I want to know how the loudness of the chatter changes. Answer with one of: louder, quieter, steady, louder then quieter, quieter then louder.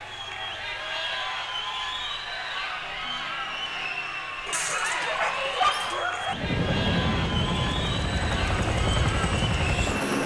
steady.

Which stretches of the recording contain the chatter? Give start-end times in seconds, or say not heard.
0.0-10.2.